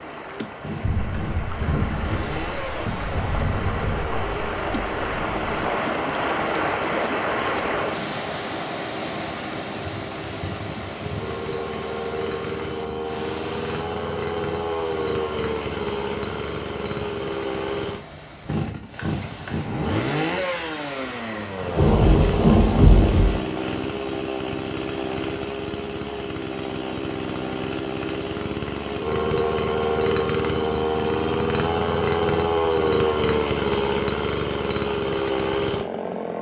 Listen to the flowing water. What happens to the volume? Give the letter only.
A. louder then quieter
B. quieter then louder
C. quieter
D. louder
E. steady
A.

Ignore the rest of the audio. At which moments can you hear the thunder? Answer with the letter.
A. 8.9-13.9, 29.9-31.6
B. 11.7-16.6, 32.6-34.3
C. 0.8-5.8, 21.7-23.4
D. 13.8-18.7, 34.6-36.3
C.